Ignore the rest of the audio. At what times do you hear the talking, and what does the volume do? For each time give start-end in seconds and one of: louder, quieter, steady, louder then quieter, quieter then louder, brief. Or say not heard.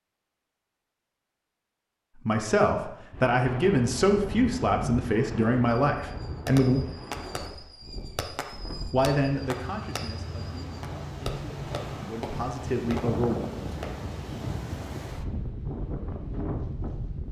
2.1-6.8 steady
8.9-13.4 quieter then louder.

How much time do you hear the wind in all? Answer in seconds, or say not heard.
14 s.